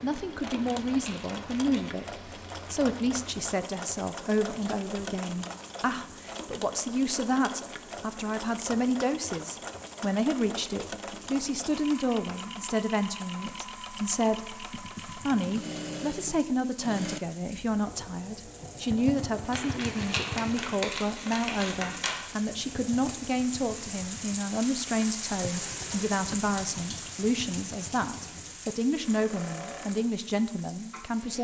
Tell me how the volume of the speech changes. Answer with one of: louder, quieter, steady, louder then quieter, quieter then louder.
steady.